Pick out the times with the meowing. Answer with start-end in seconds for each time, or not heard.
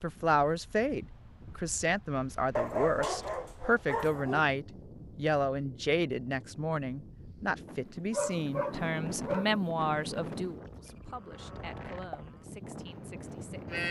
not heard.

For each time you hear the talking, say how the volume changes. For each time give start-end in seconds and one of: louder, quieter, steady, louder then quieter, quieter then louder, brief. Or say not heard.
0.0-13.8 quieter.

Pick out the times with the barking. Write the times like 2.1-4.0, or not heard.
2.5-4.5, 8.1-9.6.